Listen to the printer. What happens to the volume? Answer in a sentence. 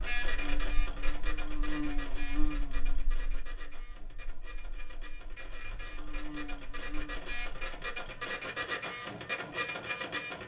The loudness of the printer goes down, then up.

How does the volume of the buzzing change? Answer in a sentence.
The loudness of the buzzing goes down, then up.